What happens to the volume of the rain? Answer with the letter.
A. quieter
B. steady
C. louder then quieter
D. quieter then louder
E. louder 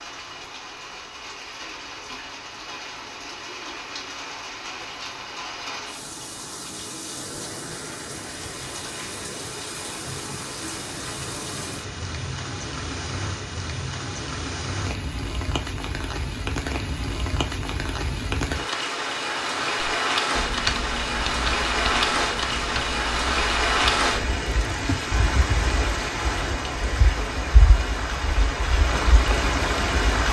E.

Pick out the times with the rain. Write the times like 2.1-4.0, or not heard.
0.0-30.2.